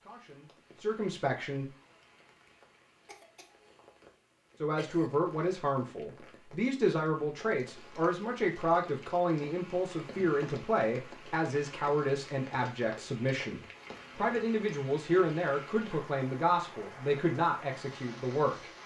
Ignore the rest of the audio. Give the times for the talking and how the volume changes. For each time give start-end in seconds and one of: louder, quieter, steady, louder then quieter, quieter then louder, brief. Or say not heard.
0.0-1.6 brief
4.6-18.7 steady.